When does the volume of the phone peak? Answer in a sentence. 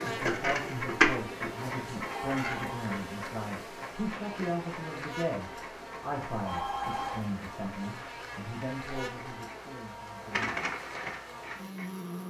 The loudest moment of the phone is at 7 seconds.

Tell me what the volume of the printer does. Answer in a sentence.
The volume of the printer goes down, then up.